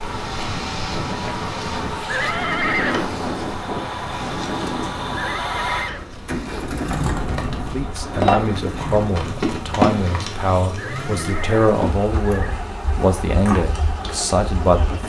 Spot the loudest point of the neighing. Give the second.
3 s.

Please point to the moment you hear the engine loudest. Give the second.
7 s.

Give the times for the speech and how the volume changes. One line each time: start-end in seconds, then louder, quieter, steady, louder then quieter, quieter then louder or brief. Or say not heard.
7.5-15.0 steady.